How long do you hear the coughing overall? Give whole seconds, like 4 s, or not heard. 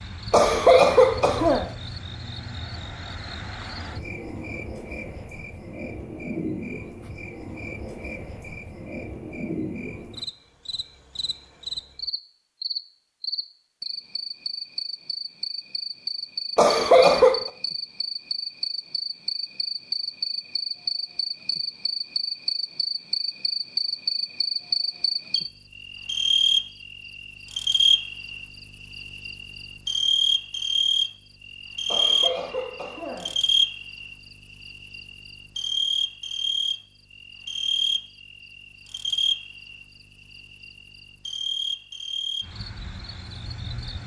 4 s.